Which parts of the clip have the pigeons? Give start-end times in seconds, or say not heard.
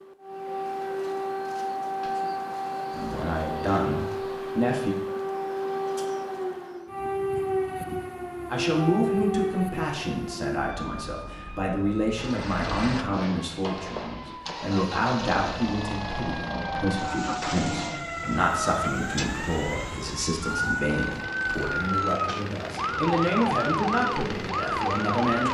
not heard.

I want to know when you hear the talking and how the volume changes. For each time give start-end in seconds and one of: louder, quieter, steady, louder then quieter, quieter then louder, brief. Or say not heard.
2.9-5.0 brief
8.5-25.4 steady.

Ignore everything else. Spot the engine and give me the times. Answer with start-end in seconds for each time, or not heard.
12.2-25.4.